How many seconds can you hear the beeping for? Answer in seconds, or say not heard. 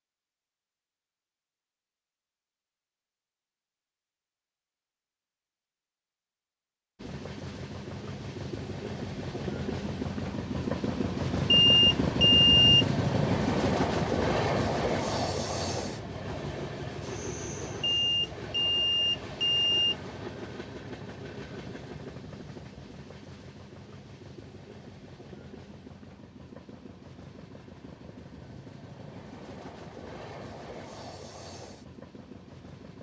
3 s.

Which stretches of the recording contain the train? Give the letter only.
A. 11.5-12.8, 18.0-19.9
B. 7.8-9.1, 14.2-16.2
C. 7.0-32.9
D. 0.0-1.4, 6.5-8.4
C.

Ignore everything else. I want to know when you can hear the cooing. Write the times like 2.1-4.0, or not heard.
not heard.